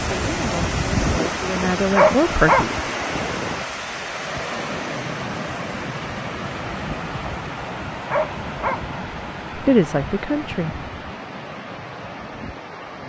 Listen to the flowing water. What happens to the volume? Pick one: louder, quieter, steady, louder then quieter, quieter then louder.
quieter.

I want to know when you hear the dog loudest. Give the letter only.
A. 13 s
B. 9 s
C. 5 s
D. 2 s
D.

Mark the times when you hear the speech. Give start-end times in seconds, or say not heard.
0.0-2.9, 8.9-10.8.